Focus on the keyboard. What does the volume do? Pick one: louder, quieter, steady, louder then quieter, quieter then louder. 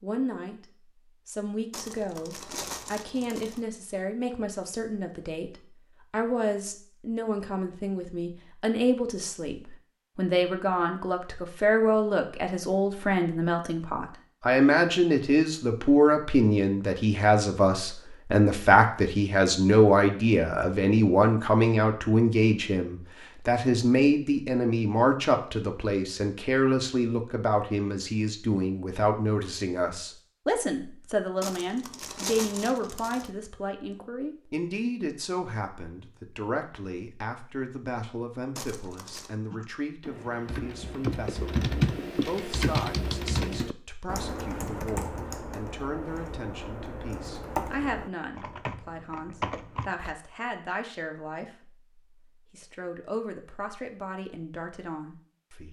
quieter.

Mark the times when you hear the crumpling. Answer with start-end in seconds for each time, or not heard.
1.7-3.6, 31.4-33.3, 38.5-39.3.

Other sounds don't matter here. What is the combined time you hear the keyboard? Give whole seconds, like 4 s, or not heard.
11 s.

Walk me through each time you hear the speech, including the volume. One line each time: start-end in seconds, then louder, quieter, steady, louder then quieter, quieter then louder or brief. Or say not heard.
0.0-0.7 brief
1.2-55.6 louder then quieter.